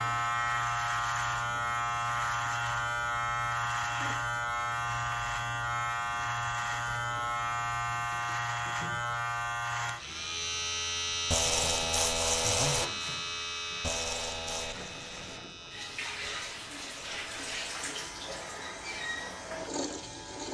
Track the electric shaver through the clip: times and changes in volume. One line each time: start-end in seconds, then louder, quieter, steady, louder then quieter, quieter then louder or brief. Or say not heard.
0.0-20.5 quieter.